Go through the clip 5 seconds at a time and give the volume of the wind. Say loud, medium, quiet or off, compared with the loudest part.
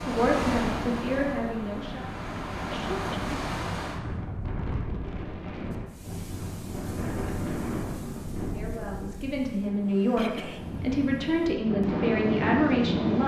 loud, medium, loud.